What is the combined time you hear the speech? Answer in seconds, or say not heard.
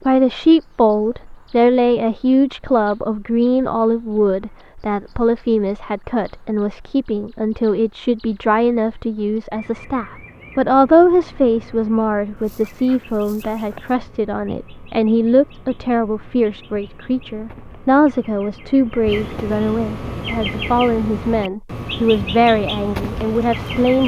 24 s.